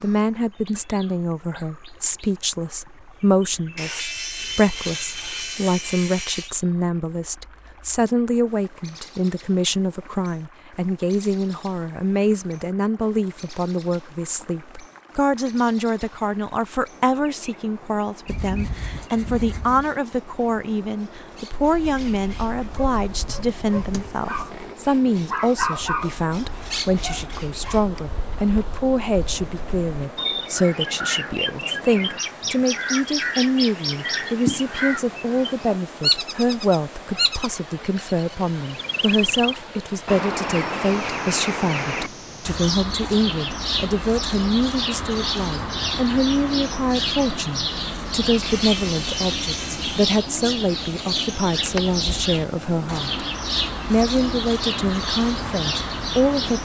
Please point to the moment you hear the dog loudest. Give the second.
26 s.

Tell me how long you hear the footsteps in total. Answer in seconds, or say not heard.
not heard.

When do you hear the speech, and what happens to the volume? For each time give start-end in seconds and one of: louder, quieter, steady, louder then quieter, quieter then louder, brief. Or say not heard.
0.0-53.2 steady
53.9-56.5 brief.